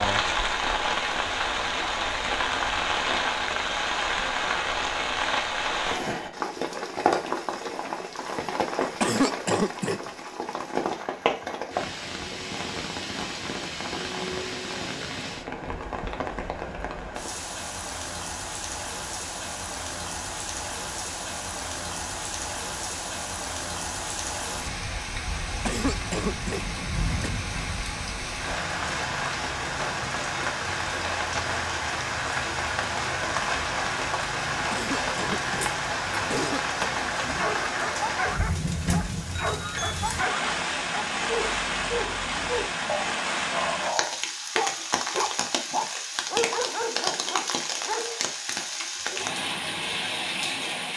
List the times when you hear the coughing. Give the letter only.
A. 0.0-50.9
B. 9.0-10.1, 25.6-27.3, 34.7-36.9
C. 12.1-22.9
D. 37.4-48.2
B.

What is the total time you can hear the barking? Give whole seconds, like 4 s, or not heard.
11 s.